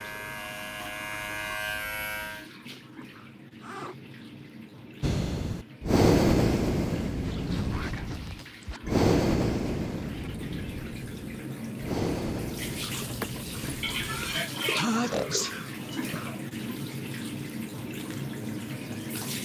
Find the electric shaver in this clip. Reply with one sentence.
The electric shaver can be heard from 0.0 to 2.5 s.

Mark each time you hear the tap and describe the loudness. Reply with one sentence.
You can hear the tap from 0.0 to 19.3 s, getting louder.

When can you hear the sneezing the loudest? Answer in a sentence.
The volume of the sneezing peaks at 15 seconds.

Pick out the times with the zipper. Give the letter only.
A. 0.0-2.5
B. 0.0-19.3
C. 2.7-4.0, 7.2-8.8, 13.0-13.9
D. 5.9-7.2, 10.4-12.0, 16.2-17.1
C.